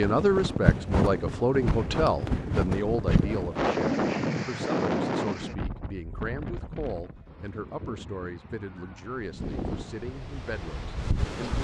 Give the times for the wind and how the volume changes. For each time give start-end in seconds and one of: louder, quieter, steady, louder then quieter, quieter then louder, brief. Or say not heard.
0.0-11.5 quieter then louder.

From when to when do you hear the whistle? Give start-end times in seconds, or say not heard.
not heard.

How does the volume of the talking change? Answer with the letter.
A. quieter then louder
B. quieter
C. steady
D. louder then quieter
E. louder
B.